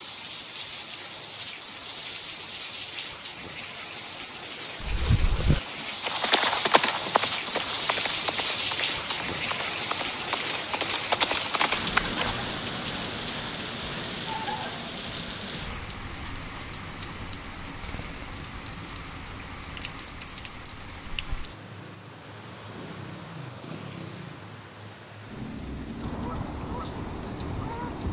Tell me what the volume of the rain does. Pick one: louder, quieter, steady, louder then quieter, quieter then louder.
louder then quieter.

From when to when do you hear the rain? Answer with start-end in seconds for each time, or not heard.
0.0-28.0.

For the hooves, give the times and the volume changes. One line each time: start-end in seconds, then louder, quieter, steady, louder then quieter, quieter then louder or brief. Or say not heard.
4.8-12.3 quieter then louder.